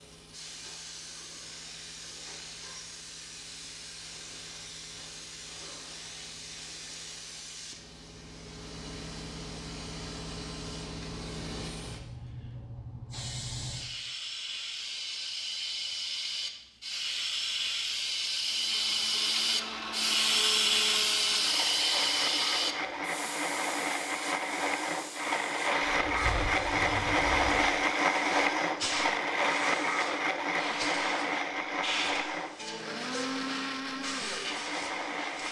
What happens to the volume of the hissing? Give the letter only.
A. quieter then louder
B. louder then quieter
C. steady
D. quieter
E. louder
B.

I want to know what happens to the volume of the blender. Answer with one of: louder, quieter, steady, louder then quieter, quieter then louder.
louder then quieter.